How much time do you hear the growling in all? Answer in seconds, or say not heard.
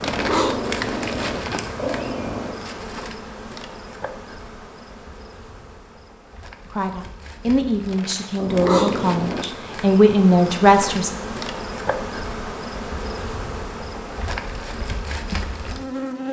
4 s.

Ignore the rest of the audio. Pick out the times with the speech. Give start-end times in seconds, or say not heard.
6.7-11.1.